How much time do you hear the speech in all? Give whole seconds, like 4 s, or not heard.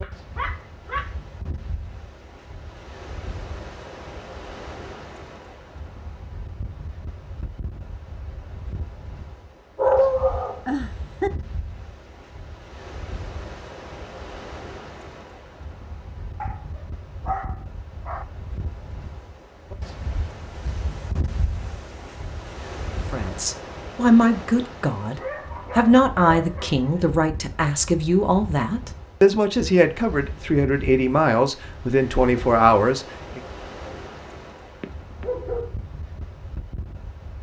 10 s.